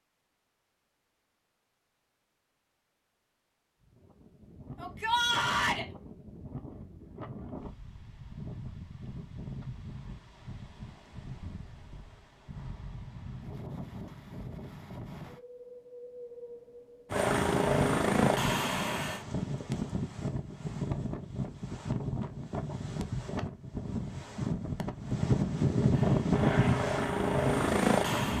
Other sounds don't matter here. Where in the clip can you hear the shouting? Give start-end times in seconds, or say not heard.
4.8-5.8.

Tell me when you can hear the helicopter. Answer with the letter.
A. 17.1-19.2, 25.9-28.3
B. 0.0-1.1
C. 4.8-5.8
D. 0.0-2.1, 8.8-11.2
A.